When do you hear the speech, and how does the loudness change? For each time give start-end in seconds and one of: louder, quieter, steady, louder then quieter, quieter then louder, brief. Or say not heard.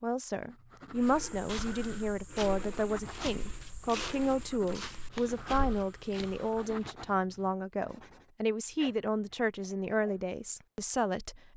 0.0-11.5 steady.